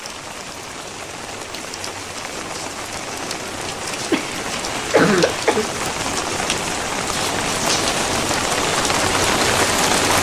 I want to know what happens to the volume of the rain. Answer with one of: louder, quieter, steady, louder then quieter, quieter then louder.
louder.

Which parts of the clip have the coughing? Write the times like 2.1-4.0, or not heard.
4.1-5.7.